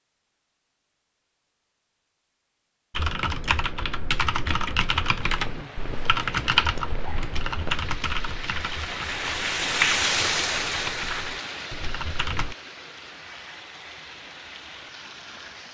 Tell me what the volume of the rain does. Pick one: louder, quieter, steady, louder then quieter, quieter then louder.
louder then quieter.